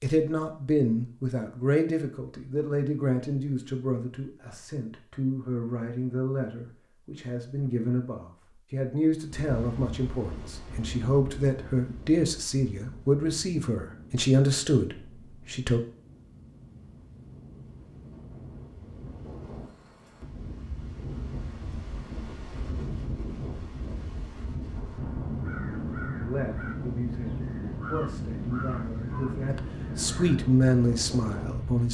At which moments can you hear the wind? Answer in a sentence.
The wind can be heard from 9.2 to 31.8 s.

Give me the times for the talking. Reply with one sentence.
You can hear the talking from 0.0 to 15.8 s and from 26.1 to 31.8 s.